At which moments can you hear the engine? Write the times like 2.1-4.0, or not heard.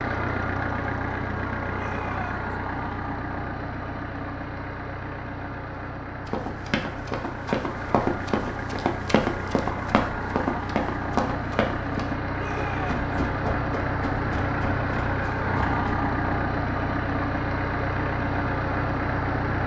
0.0-19.6.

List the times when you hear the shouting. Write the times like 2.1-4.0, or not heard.
1.7-2.5, 12.3-13.1.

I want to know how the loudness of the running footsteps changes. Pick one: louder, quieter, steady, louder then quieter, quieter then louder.
quieter.